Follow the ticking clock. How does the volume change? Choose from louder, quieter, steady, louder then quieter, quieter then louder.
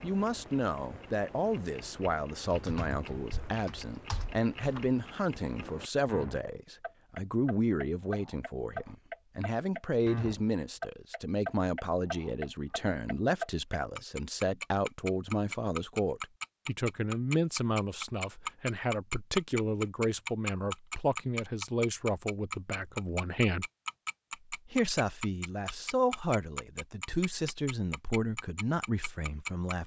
louder then quieter.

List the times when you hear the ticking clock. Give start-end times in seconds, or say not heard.
0.0-29.8.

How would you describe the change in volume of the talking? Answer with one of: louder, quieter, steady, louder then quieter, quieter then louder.
steady.